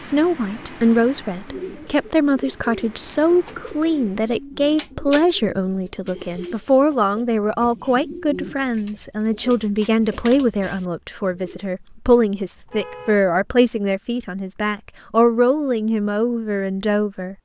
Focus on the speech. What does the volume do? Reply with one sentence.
The volume of the speech stays about the same.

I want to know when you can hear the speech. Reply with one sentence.
The speech can be heard from 0.0 to 17.3 s.